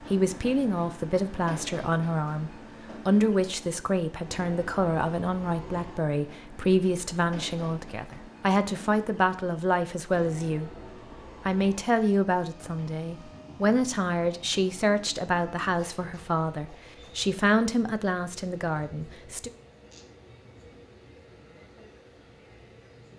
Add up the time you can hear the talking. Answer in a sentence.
The talking can be heard for 19 seconds in total.